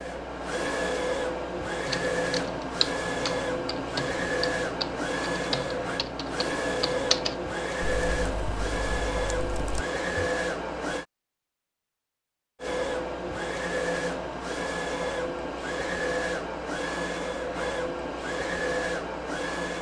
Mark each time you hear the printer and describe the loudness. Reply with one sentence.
You can hear the printer from 0.0 to 11.1 s, at a steady volume; and from 12.6 to 19.7 s, at a steady volume.